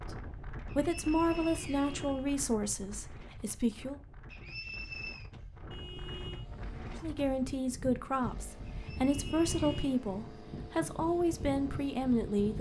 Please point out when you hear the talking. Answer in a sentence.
The talking can be heard from 0.1 to 4.0 s and from 7.0 to 12.5 s.